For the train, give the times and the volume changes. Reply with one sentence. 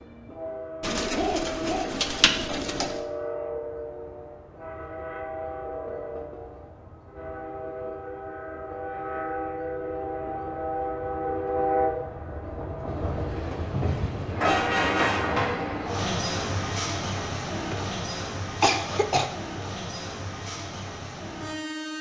You can hear the train from 0.0 to 21.9 s, getting louder then quieter.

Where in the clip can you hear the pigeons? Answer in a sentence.
You can hear the pigeons from 0.8 to 3.0 s.